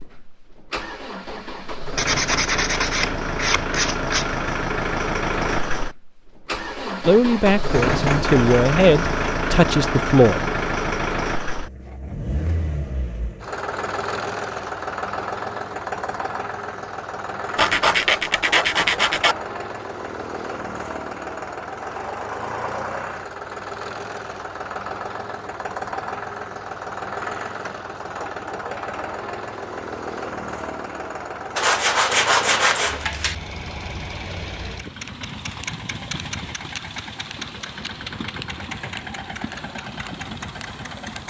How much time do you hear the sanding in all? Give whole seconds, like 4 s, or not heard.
6 s.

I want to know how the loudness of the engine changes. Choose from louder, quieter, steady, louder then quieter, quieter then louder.
quieter.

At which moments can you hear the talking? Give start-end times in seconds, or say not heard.
7.0-10.6.